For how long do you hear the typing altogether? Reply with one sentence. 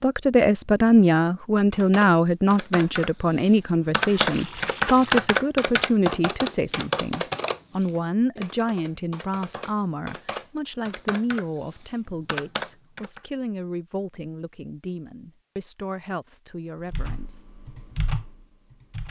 The typing can be heard for 13 seconds in total.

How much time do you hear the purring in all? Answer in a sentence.
The purring can't be heard in this clip.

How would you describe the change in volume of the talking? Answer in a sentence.
The volume of the talking goes down.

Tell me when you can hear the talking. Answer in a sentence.
The talking can be heard from 0.0 to 17.4 s.